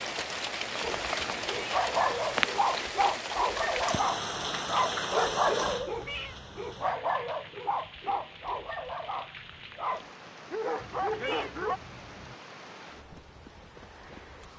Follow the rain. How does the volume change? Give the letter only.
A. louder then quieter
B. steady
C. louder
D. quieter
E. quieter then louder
D.